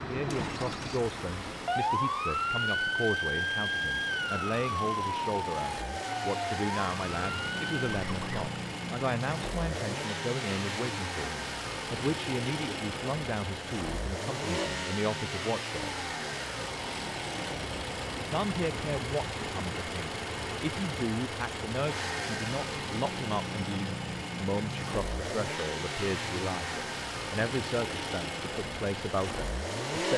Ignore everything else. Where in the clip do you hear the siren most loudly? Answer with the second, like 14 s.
2 s.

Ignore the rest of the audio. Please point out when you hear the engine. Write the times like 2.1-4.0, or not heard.
0.1-30.1.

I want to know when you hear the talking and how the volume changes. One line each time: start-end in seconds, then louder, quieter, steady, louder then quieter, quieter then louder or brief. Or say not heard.
0.0-16.1 steady
18.3-30.1 steady.